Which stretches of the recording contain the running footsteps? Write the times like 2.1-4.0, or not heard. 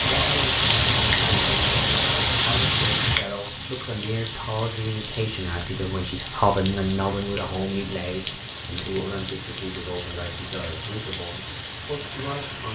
not heard.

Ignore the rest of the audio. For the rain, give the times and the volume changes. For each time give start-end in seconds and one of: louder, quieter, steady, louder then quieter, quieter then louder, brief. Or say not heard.
0.0-12.6 quieter.